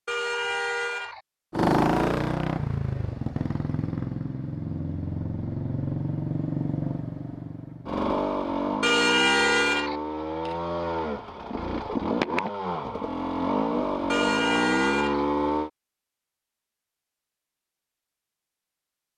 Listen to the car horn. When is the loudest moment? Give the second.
9 s.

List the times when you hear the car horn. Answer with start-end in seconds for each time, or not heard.
0.1-1.2, 8.8-9.9, 14.1-15.2.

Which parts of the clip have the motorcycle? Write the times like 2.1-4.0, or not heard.
1.5-15.7.